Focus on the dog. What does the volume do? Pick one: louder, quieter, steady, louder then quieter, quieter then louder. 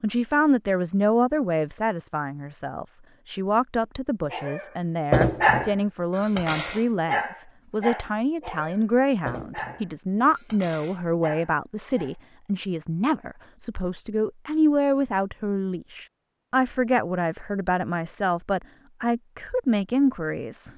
quieter.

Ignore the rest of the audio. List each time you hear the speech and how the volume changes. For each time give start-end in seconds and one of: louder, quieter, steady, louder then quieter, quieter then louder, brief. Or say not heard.
0.0-20.7 steady.